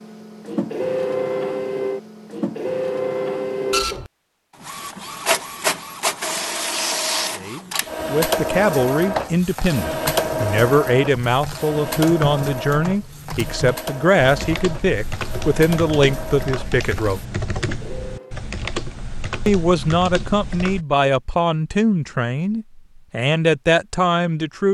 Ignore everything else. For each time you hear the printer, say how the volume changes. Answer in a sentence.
You can hear the printer from 0.0 to 18.4 s, getting quieter.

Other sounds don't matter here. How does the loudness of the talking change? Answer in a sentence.
The loudness of the talking stays about the same.